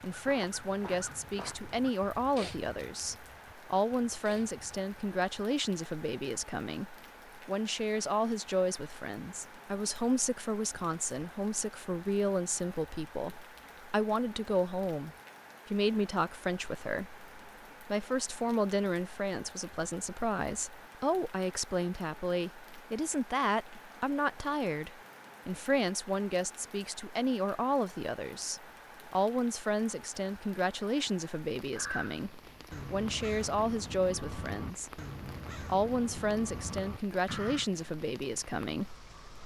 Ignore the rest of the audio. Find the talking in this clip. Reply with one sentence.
You can hear the talking from 0.0 to 35.0 s and from 35.6 to 39.4 s.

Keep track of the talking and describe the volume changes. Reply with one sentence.
The loudness of the talking stays about the same.